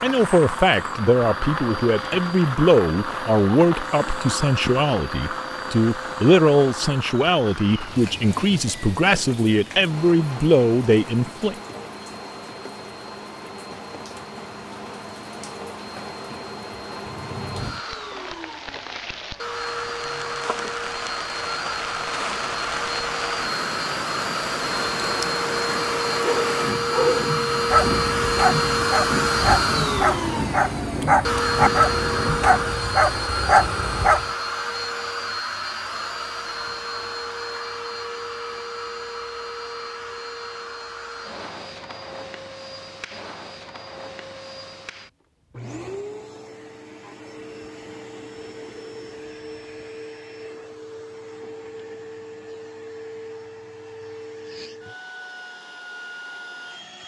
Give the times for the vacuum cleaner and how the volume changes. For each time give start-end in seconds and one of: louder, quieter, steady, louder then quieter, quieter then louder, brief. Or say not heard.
0.0-57.0 louder then quieter.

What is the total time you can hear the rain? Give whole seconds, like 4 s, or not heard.
33 s.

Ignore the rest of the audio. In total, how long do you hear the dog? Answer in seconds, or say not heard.
8 s.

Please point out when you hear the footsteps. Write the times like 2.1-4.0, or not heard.
not heard.